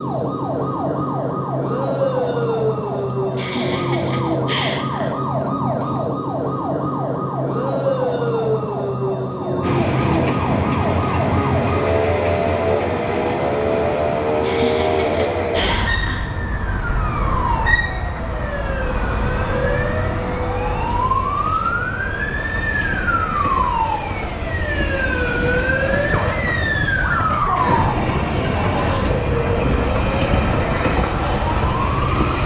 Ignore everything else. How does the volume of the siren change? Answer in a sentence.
The loudness of the siren stays about the same.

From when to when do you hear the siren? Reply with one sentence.
You can hear the siren from 0.0 to 32.4 s.